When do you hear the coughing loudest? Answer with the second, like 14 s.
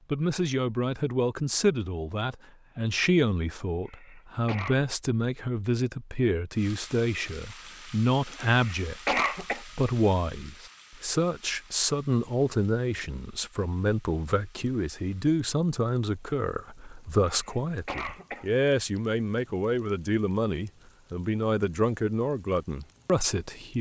9 s.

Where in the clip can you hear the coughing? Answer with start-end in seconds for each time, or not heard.
3.9-4.8, 8.4-9.6, 17.3-18.4.